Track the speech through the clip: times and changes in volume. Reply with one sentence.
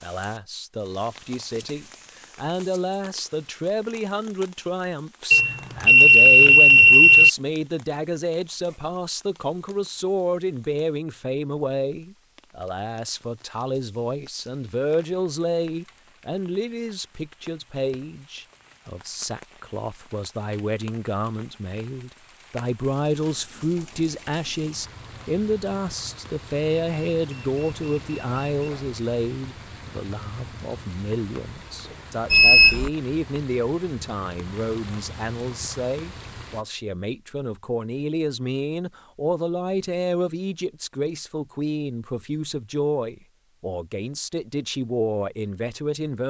The speech can be heard from 0.0 to 46.2 s, at a steady volume.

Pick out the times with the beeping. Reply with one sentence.
The beeping can be heard from 5.3 to 7.3 s, from 26.7 to 28.7 s and from 32.3 to 32.9 s.